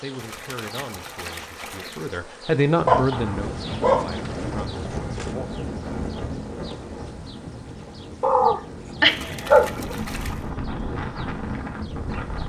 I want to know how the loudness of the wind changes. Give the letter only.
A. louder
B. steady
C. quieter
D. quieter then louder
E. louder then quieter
D.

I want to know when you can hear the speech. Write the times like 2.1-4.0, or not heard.
0.0-5.5.